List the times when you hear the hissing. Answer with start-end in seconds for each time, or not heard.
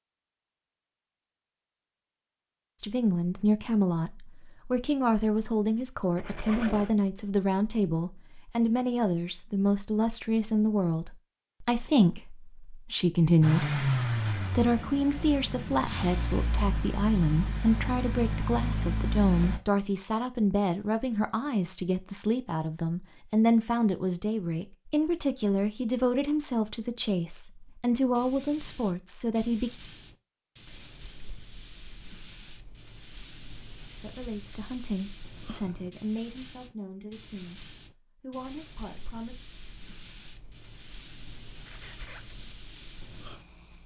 28.1-43.8.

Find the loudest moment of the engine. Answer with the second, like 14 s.
14 s.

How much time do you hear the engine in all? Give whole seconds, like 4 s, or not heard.
6 s.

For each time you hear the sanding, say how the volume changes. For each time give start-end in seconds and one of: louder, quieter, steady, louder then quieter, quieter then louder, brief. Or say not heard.
not heard.